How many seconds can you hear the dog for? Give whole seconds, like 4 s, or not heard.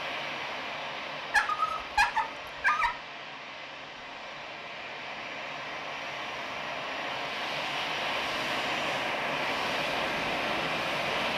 2 s.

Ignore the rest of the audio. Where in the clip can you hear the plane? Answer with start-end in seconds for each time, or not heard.
0.0-11.3.